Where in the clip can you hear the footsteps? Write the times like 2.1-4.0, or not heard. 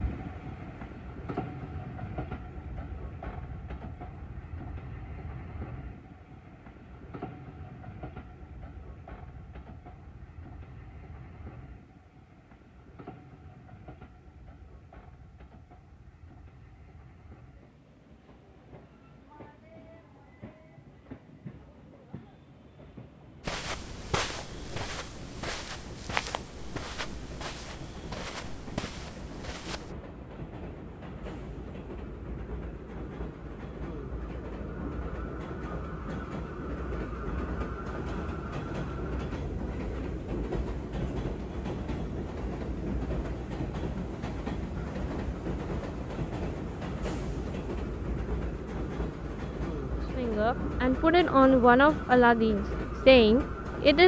23.4-29.9.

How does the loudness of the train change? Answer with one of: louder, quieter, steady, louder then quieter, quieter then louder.
quieter then louder.